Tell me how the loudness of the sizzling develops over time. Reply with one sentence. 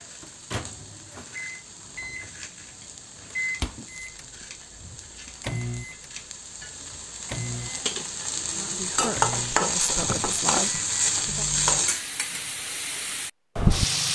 The volume of the sizzling goes up.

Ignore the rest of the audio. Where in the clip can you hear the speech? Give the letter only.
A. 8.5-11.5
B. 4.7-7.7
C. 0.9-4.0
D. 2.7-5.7
A.